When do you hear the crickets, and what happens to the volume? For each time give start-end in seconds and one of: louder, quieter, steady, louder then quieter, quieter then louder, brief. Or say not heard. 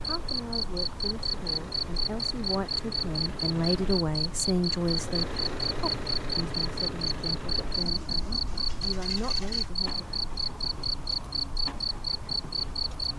0.0-13.1 steady.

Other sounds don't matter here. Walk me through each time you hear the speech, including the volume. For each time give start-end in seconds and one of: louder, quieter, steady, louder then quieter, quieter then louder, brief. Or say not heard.
0.1-10.1 louder then quieter.